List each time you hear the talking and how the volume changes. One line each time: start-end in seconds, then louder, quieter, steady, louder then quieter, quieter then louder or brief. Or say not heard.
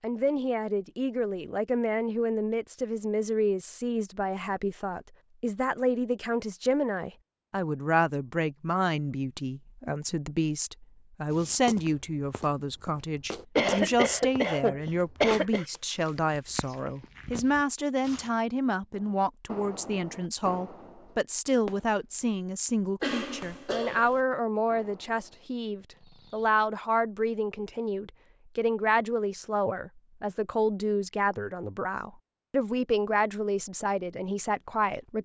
0.0-35.2 steady.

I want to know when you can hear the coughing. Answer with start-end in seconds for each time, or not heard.
13.6-15.7, 23.0-24.2.